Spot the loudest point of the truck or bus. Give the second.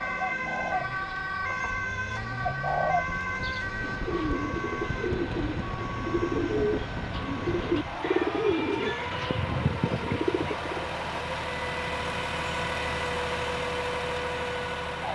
13 s.